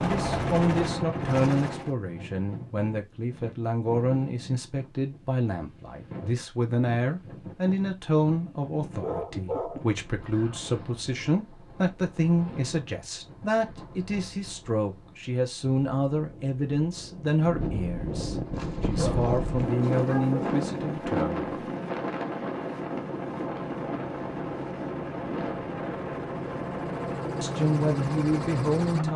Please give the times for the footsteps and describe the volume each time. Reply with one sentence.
The footsteps can't be heard in this clip.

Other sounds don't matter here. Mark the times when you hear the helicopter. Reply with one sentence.
The helicopter can be heard from 0.0 to 1.9 s and from 18.2 to 29.1 s.